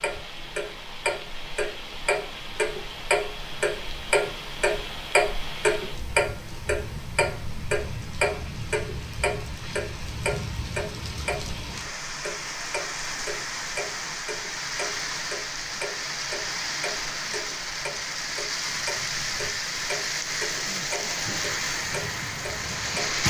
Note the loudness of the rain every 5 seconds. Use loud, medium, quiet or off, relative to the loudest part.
medium, medium, medium, loud, loud.